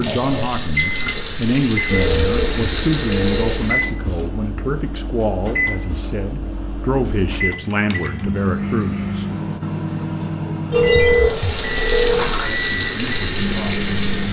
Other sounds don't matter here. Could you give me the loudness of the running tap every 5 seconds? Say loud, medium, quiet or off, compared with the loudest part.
loud, off, loud.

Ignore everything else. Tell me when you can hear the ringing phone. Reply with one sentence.
You can hear the ringing phone from 1.9 to 3.6 s and from 10.7 to 12.3 s.